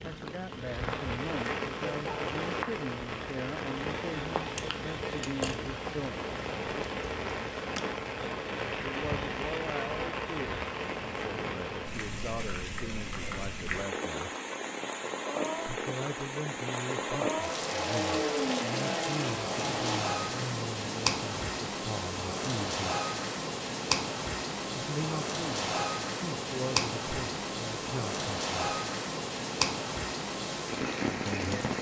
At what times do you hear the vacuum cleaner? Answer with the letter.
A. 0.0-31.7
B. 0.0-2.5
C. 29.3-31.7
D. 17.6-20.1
D.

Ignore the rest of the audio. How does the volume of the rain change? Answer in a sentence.
The volume of the rain stays about the same.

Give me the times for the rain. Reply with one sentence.
The rain can be heard from 0.0 to 31.7 s.